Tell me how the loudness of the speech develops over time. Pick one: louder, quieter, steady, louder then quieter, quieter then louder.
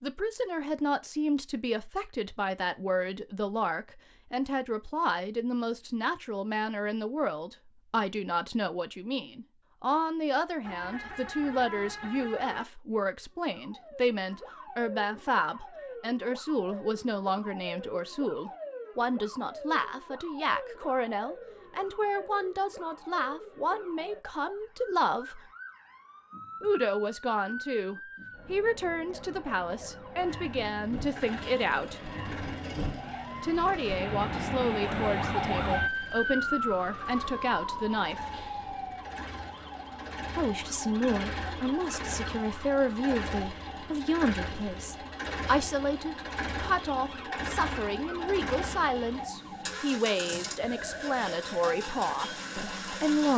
steady.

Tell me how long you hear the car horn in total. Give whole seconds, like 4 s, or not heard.
2 s.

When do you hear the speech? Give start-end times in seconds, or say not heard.
0.0-25.4, 26.6-32.0, 33.4-38.3, 40.4-53.3.